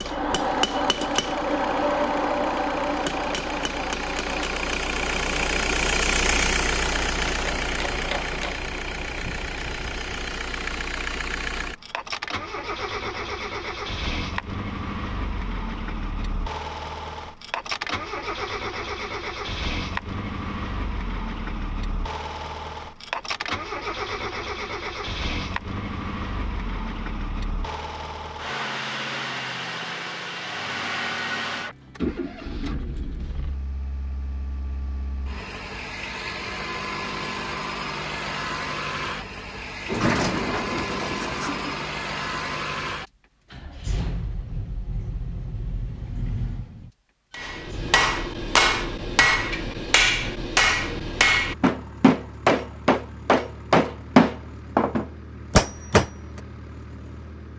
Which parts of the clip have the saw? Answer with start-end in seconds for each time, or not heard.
not heard.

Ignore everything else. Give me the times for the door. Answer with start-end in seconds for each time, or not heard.
39.9-41.9.